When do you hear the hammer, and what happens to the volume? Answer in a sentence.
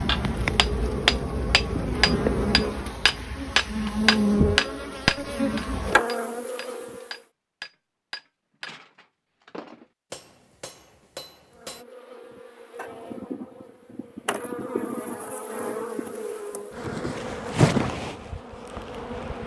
You can hear the hammer from 0.1 to 11.8 s, getting quieter.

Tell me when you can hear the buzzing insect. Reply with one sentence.
The buzzing insect can be heard from 0.0 to 7.2 s and from 11.5 to 19.4 s.